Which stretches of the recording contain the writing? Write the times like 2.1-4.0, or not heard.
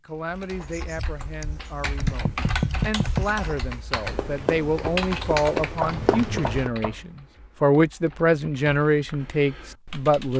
0.6-6.7.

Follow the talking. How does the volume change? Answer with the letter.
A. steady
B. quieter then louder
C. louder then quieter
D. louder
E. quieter
D.